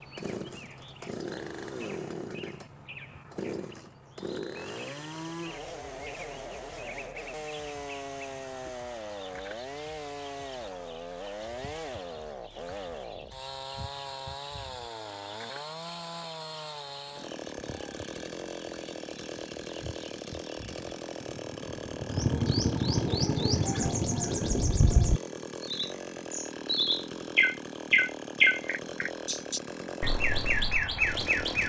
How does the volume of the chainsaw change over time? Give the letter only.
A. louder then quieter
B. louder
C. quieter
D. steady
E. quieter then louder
D.